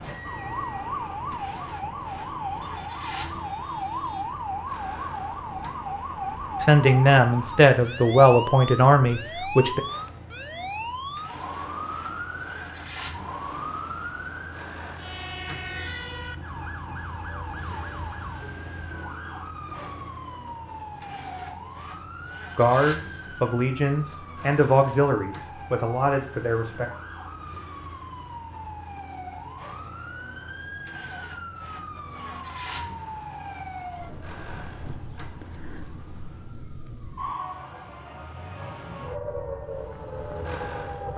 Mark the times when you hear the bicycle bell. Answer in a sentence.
The bicycle bell can be heard from 0.1 to 0.8 s.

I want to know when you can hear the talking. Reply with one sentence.
You can hear the talking from 6.6 to 9.8 s and from 22.6 to 26.9 s.